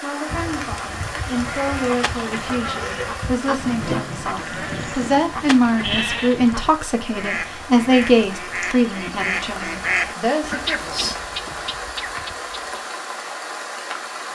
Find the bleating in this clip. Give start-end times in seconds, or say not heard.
0.2-6.8.